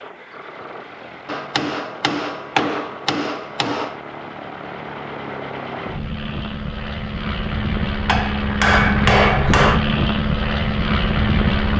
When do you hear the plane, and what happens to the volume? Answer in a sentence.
The plane can be heard from 0.0 to 11.7 s, getting louder.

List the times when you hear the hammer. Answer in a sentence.
You can hear the hammer from 1.2 to 4.0 s and from 8.1 to 9.8 s.